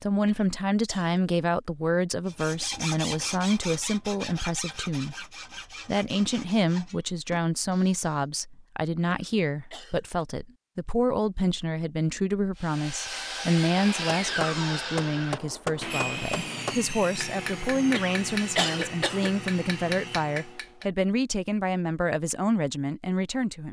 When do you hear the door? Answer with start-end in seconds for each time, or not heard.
not heard.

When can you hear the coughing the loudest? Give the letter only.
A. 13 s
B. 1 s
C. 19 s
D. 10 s
C.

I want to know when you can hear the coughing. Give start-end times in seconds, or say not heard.
0.2-1.2, 9.1-10.2, 17.9-19.3.